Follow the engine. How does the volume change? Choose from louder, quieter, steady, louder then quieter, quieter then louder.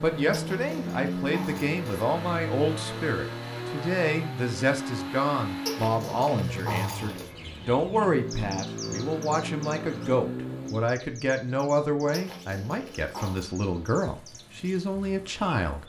quieter.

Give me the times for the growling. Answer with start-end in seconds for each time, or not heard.
0.3-2.0, 5.7-7.3, 12.1-13.4.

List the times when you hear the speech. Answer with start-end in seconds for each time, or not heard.
0.0-15.8.